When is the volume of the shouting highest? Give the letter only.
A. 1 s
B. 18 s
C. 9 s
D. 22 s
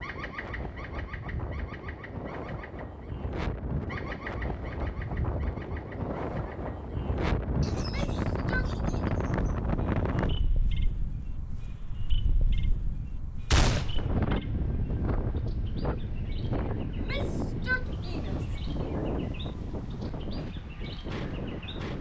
B.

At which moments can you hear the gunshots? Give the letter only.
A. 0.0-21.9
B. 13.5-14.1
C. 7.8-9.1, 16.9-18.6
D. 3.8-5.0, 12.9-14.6
B.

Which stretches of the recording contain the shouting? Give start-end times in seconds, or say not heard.
7.8-9.1, 16.9-18.6.